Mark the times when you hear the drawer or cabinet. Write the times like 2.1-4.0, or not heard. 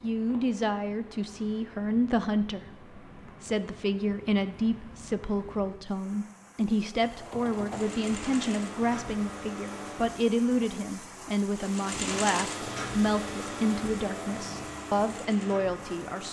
not heard.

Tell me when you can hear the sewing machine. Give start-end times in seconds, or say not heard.
6.9-10.3, 11.6-16.2.